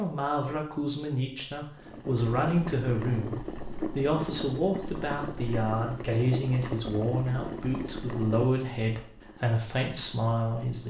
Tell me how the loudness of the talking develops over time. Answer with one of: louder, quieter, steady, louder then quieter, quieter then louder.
steady.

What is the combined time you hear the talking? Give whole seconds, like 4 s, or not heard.
11 s.